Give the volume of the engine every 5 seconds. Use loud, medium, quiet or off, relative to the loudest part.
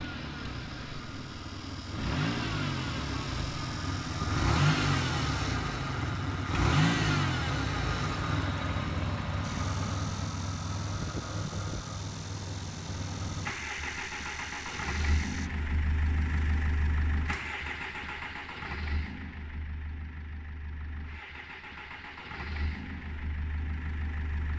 loud, loud, medium, medium, quiet.